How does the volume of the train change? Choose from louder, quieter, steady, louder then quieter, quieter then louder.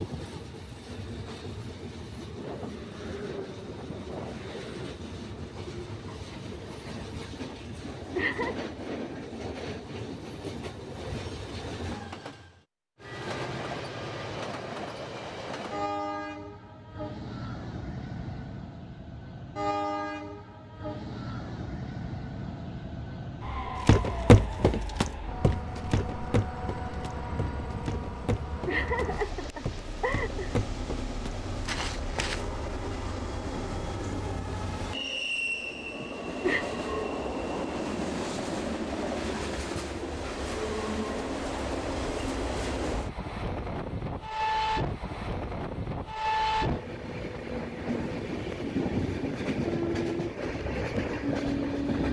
louder.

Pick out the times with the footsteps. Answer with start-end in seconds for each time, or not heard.
23.9-32.5.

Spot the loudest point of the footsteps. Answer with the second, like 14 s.
24 s.